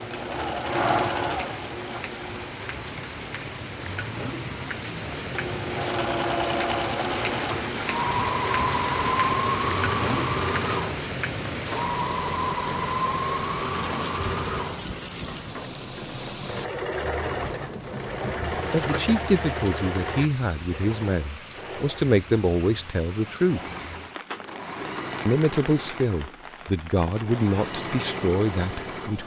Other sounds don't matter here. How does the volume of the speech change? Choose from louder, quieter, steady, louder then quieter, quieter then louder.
steady.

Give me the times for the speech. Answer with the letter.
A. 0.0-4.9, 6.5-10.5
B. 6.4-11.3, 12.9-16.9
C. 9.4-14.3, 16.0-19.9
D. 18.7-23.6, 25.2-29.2
D.